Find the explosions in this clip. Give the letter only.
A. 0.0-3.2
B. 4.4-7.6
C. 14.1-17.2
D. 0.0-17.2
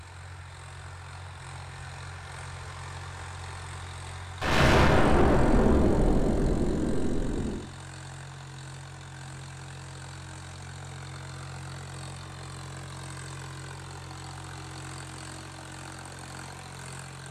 B.